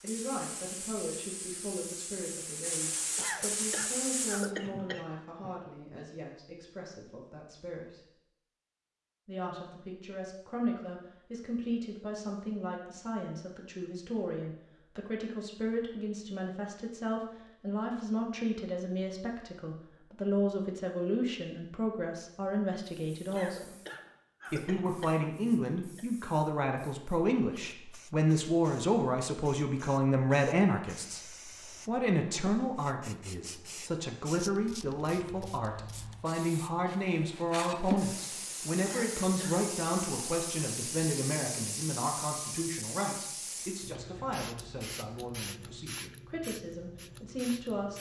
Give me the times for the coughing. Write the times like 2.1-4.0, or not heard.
3.1-5.7, 23.3-26.1, 38.8-39.6.